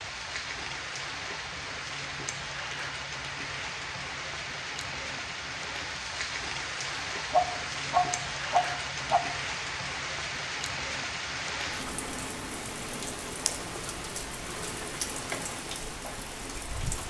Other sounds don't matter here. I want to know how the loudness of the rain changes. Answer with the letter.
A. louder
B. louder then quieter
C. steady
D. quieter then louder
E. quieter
C.